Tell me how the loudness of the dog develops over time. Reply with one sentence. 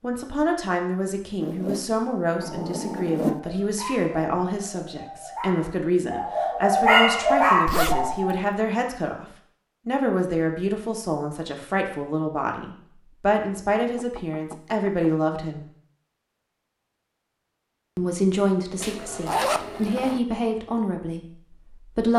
The loudness of the dog goes up.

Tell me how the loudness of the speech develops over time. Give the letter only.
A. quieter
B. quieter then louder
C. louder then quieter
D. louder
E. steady
E.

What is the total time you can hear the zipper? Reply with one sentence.
You can hear the zipper for 4 seconds altogether.